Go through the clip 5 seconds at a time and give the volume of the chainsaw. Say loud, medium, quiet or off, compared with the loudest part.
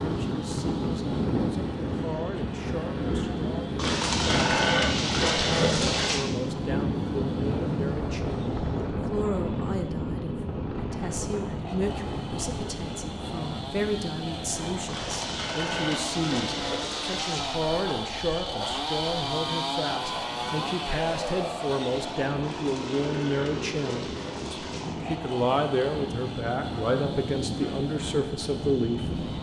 quiet, quiet, medium, loud, loud, medium.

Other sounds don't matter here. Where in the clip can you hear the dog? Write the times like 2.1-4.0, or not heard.
not heard.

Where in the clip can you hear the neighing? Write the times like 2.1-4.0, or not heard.
3.8-6.2, 14.8-17.6, 22.4-24.9.